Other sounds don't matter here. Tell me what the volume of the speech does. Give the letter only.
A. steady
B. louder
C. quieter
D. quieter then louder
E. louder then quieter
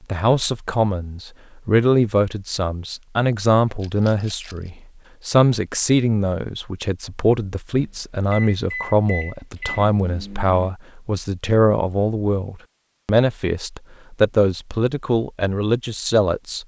A.